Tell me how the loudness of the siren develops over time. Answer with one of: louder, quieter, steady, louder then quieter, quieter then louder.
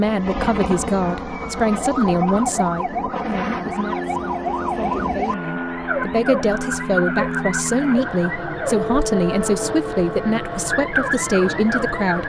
steady.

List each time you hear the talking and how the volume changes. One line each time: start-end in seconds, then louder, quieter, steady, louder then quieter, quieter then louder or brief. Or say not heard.
0.0-12.2 quieter then louder.